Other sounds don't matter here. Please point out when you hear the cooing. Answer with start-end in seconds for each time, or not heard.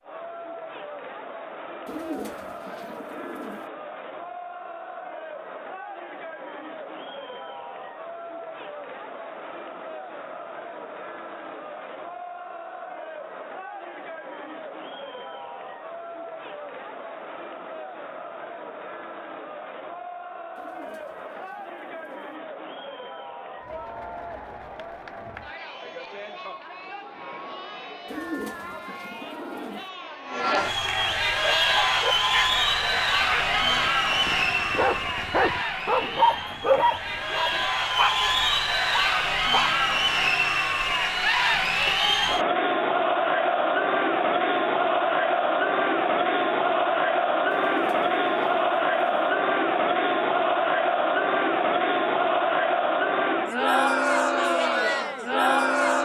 1.9-3.6, 20.6-22.3, 28.1-29.9, 47.5-49.3.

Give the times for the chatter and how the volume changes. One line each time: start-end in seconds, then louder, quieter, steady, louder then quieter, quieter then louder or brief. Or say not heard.
0.0-56.0 louder.